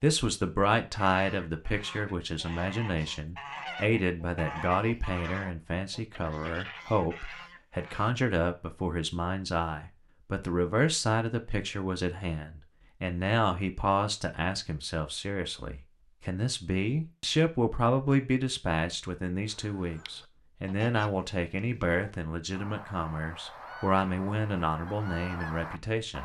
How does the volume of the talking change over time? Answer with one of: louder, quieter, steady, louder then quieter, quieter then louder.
steady.